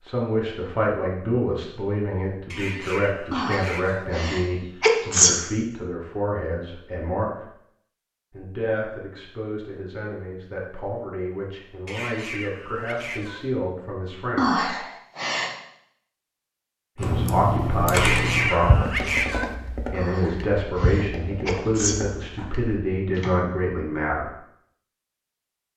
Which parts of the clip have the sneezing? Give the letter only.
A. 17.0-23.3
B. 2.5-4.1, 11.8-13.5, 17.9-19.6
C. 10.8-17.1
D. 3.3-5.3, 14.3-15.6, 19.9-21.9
D.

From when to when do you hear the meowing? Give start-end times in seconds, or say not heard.
2.5-4.1, 11.8-13.5, 17.9-19.6.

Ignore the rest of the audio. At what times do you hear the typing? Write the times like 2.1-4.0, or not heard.
17.0-23.3.